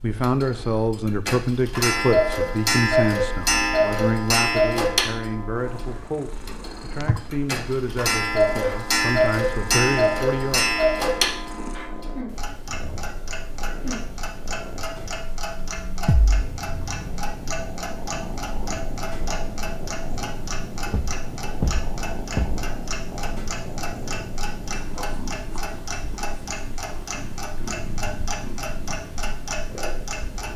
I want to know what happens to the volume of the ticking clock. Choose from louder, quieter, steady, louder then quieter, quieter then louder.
quieter.